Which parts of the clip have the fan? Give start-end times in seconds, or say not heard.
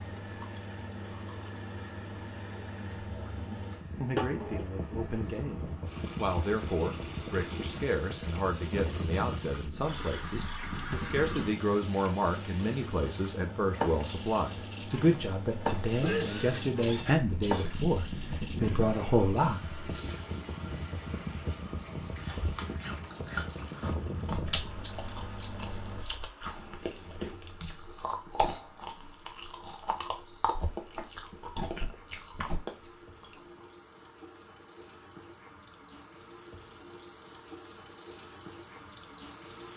0.0-26.1.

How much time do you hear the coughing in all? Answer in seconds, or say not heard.
2 s.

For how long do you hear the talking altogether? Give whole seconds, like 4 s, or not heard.
17 s.